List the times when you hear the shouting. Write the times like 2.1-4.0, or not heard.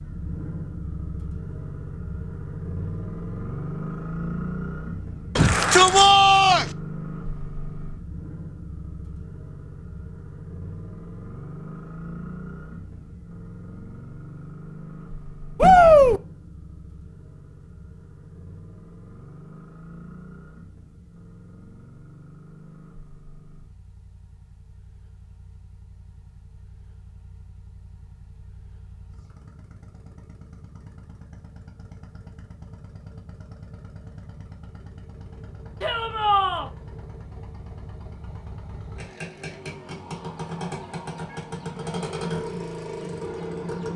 5.3-6.7, 15.6-16.2, 35.8-36.7.